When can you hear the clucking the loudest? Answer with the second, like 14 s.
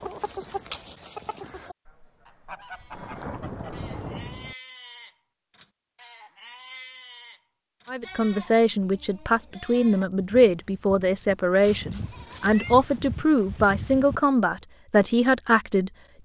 1 s.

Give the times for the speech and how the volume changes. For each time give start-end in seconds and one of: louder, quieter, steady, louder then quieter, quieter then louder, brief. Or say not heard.
7.8-16.2 steady.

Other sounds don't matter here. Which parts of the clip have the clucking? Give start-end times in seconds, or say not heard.
0.0-3.9.